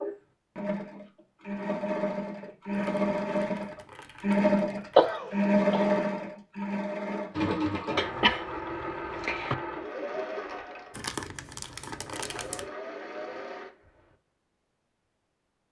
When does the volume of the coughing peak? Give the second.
5 s.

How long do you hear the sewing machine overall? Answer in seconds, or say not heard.
14 s.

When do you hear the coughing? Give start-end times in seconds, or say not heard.
5.0-5.9, 8.0-9.6.